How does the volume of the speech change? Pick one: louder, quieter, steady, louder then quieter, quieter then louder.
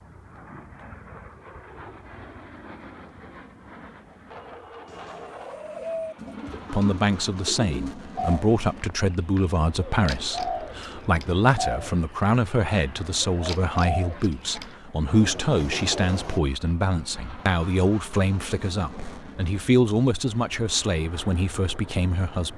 steady.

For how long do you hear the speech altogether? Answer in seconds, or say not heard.
16 s.